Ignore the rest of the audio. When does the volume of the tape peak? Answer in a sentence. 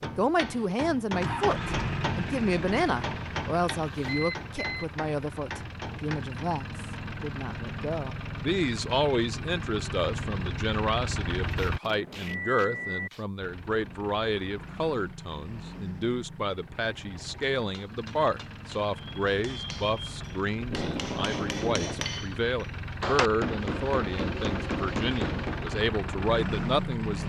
The volume of the tape peaks at 22 seconds.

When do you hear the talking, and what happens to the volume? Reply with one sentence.
You can hear the talking from 0.0 to 27.2 s, at a steady volume.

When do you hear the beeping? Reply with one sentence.
You can hear the beeping from 4.0 to 4.8 s, from 11.8 to 13.1 s and from 18.9 to 20.4 s.